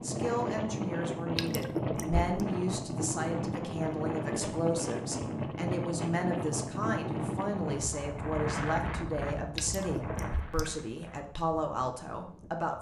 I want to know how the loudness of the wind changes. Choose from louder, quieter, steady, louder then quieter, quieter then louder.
quieter.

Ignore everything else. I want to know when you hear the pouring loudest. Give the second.
2 s.